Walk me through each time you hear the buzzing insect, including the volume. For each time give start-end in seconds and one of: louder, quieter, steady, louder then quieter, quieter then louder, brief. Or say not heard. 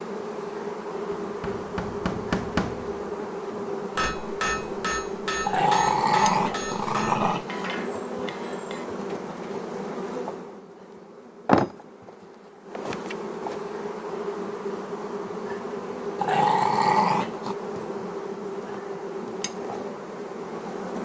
0.0-21.0 steady.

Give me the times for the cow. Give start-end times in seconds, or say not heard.
not heard.